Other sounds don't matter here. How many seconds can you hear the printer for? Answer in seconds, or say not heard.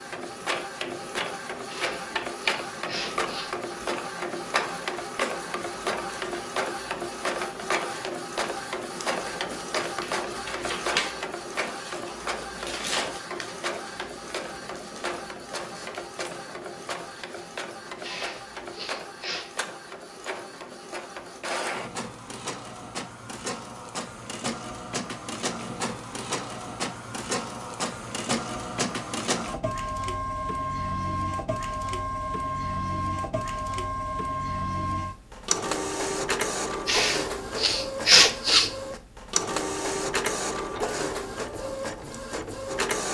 43 s.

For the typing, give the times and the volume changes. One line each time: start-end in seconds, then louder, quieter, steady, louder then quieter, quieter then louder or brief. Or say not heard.
not heard.